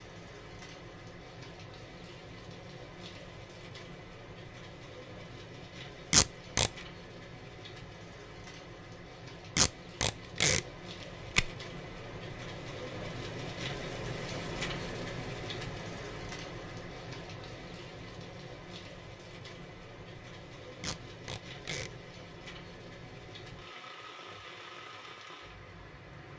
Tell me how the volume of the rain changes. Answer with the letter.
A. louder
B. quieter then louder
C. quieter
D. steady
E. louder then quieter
E.